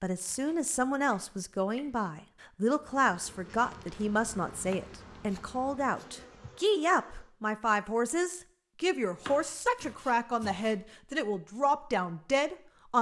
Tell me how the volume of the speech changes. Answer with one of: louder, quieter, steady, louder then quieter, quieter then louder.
steady.